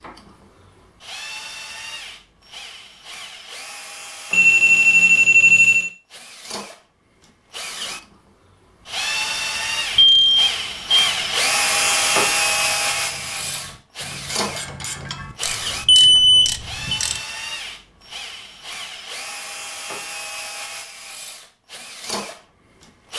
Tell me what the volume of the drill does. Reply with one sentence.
The loudness of the drill goes up, then down.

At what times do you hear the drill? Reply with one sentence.
The drill can be heard from 0.0 to 23.1 s.